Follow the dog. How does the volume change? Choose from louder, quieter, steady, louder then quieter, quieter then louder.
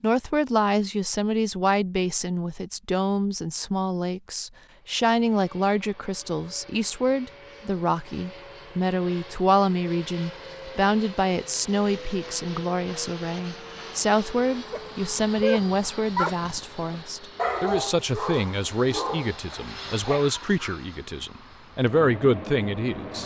quieter.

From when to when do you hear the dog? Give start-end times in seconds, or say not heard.
14.7-20.8.